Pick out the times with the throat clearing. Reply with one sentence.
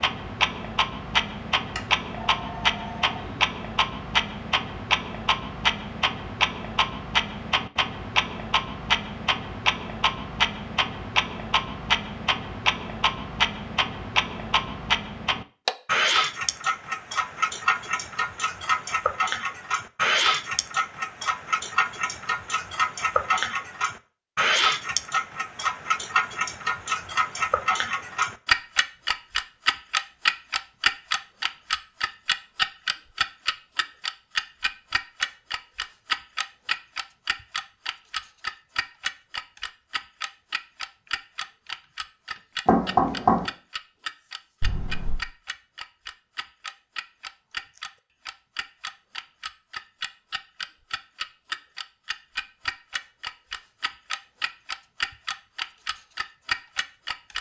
The throat clearing can't be heard in this clip.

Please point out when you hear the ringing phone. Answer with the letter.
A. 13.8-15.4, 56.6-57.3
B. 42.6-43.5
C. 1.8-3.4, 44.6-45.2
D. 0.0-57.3
C.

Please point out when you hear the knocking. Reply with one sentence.
You can hear the knocking from 42.6 to 43.5 s.